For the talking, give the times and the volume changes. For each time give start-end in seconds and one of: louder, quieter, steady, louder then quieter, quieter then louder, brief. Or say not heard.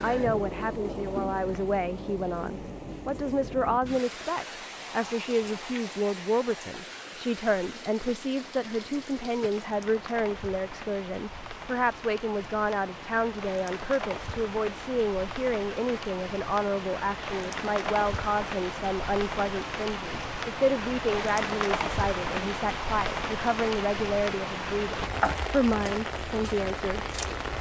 0.0-27.5 steady.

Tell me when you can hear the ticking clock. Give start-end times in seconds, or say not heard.
not heard.